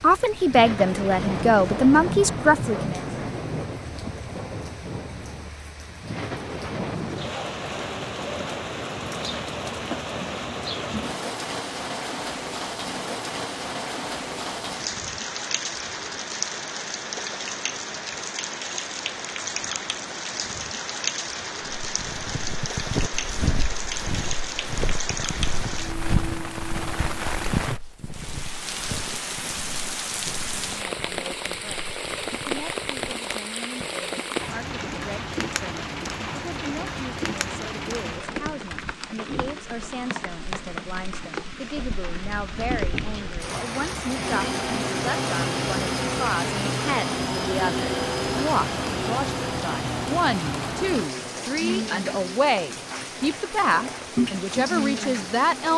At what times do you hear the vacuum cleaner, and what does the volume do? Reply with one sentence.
You can hear the vacuum cleaner from 44.0 to 55.7 s, getting quieter.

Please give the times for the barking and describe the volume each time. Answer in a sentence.
The barking can't be heard in this clip.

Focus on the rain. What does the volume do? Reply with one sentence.
The volume of the rain stays about the same.